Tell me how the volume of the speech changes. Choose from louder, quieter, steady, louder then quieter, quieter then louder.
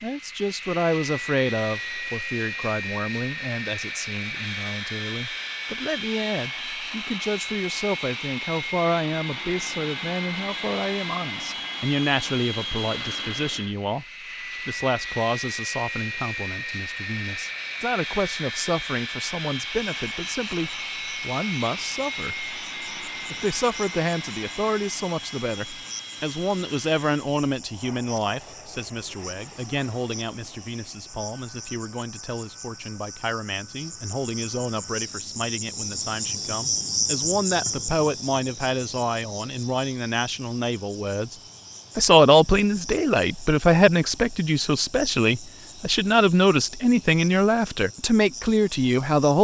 louder.